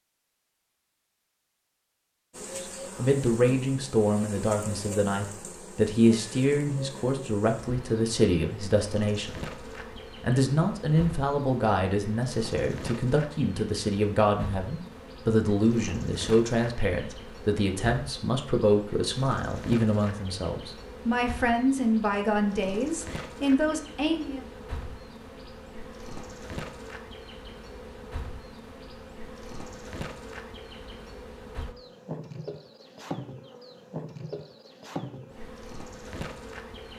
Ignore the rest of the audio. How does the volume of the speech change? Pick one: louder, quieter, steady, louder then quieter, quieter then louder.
steady.